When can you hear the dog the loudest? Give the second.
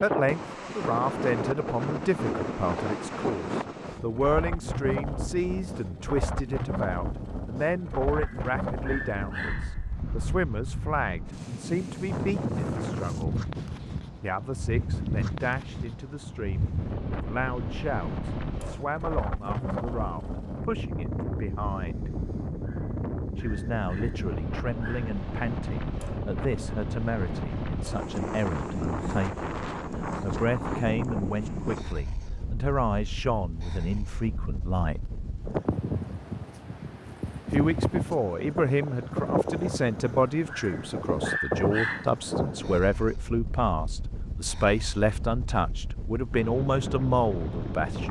42 s.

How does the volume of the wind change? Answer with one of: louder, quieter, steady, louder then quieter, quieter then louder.
steady.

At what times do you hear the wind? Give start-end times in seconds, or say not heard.
0.0-48.0.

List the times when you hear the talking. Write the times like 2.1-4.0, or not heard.
0.0-13.3, 14.2-22.1, 23.4-35.0, 37.5-48.0.